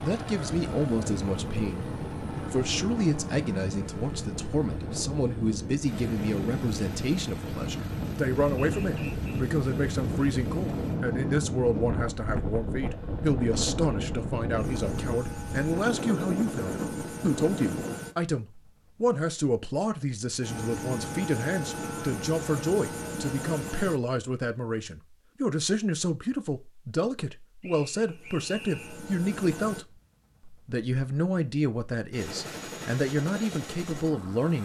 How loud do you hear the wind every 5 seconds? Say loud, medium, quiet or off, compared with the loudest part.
medium, loud, loud, loud, off, off, off.